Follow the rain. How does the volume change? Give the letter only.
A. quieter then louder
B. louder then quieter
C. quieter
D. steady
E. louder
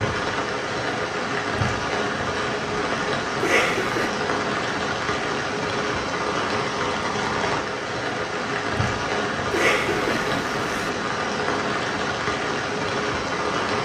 D.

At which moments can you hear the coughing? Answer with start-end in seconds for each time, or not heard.
3.4-4.1, 9.5-10.9.